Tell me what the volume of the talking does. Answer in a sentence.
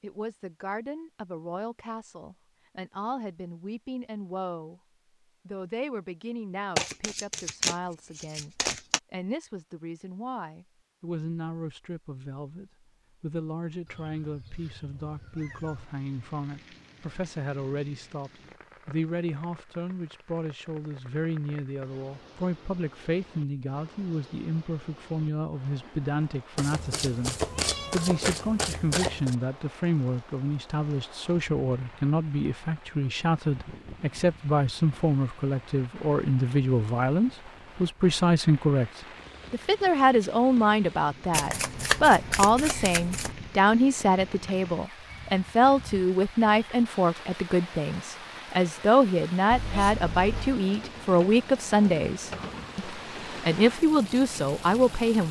The loudness of the talking goes up.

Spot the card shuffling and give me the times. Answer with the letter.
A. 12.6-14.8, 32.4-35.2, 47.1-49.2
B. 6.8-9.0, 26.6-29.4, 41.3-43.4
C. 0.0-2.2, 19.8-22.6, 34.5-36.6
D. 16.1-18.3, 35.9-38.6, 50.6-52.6
B.